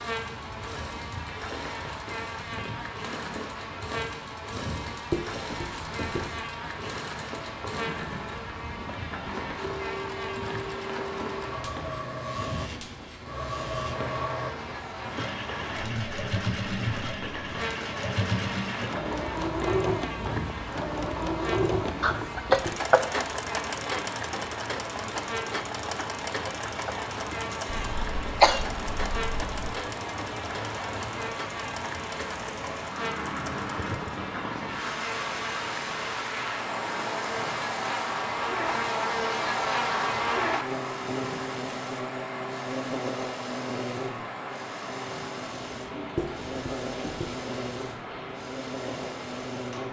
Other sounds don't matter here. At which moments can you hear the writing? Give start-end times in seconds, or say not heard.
5.1-6.3, 21.6-22.8, 27.8-29.7, 46.1-47.4.